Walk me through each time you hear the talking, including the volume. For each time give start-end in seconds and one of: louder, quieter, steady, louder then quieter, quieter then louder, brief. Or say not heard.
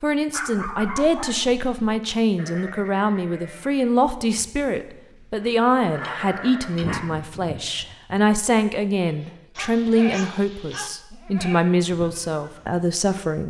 0.0-13.4 steady.